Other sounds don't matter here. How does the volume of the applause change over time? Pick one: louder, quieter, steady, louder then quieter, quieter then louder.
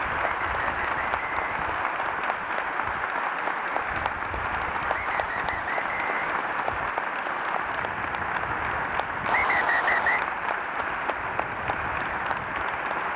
steady.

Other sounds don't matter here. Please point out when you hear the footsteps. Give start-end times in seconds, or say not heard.
not heard.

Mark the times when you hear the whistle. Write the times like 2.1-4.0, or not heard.
0.2-2.2, 4.9-6.7, 9.2-10.2.